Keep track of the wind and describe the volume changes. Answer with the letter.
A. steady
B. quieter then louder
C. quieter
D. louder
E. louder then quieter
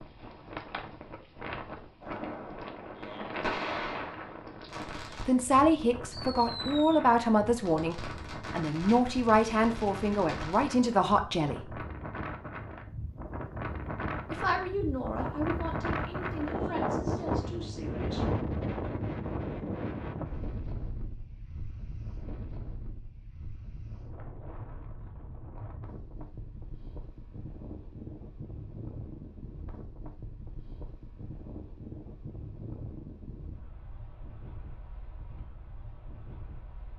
E.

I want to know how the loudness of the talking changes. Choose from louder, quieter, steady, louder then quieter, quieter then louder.
quieter.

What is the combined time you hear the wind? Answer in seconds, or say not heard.
37 s.